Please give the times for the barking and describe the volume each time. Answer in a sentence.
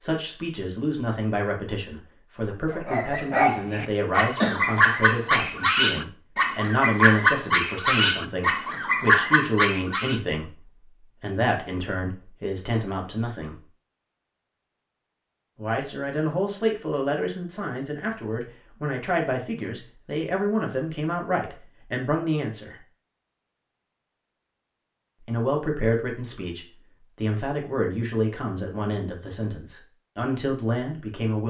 You can hear the barking from 2.7 to 10.2 s, at a steady volume.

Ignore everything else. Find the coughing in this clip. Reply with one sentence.
You can hear the coughing from 4.4 to 5.2 s.